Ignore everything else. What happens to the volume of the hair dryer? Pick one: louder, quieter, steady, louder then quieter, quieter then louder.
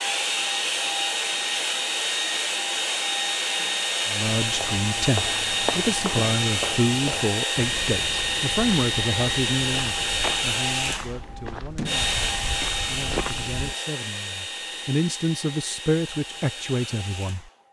quieter.